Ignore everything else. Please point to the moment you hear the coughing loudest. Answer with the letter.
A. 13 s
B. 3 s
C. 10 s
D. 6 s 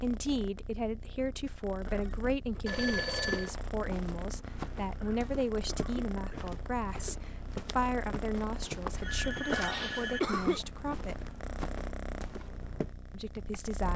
C.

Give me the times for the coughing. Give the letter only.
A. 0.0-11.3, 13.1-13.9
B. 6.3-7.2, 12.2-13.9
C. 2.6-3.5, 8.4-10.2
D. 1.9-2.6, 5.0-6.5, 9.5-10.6
D.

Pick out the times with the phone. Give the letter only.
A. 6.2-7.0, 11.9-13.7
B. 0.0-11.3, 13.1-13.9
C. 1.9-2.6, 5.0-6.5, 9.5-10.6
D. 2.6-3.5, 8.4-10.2
D.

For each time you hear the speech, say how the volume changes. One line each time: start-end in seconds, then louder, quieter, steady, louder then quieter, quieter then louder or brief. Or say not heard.
0.0-11.3 steady
13.1-13.9 brief.